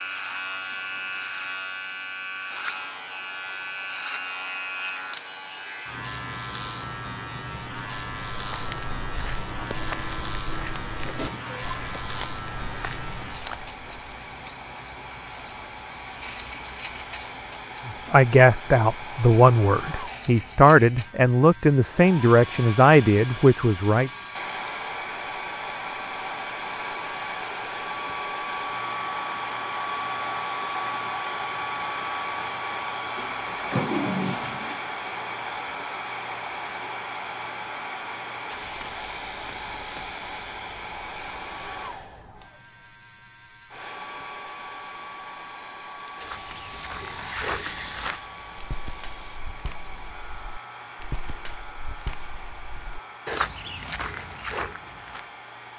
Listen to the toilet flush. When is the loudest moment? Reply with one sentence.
The volume of the toilet flush peaks at 34 seconds.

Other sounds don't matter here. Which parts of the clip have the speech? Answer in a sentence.
The speech can be heard from 17.9 to 24.1 s.